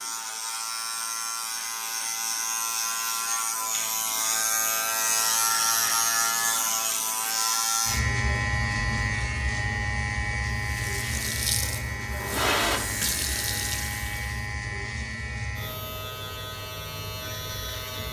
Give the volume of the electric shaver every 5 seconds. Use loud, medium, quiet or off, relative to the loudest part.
loud, loud, medium, medium.